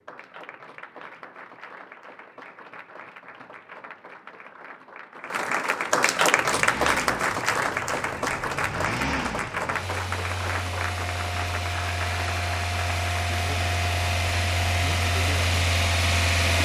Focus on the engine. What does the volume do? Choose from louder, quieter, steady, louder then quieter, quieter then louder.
louder.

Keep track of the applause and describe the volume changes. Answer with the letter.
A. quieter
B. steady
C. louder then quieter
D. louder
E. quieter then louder
C.